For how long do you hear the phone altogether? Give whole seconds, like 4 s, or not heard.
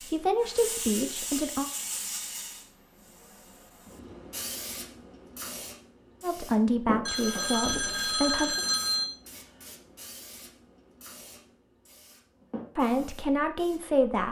2 s.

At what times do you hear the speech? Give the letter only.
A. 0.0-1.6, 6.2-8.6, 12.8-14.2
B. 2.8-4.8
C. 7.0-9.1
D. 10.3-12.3
A.